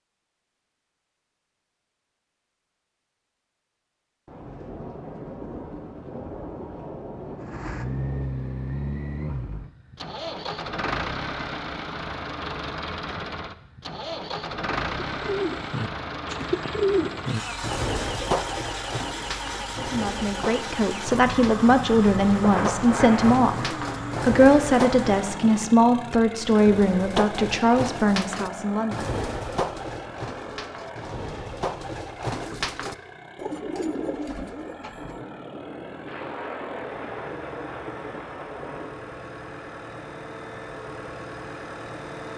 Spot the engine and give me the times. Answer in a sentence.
The engine can be heard from 7.4 to 42.3 s.